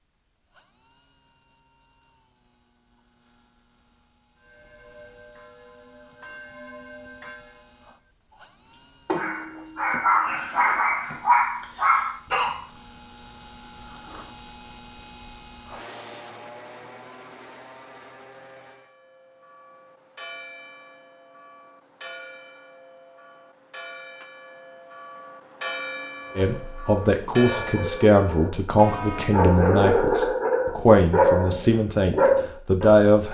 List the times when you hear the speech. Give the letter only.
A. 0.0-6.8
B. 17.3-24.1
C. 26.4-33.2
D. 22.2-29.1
C.